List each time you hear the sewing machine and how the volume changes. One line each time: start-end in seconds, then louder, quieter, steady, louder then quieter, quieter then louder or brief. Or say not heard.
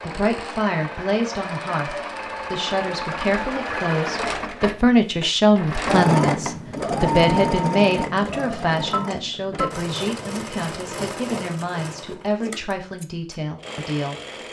0.0-14.4 louder then quieter.